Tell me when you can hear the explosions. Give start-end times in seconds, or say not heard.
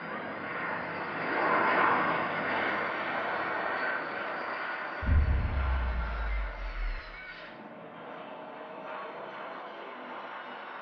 5.0-7.0.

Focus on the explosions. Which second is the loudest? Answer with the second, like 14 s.
5 s.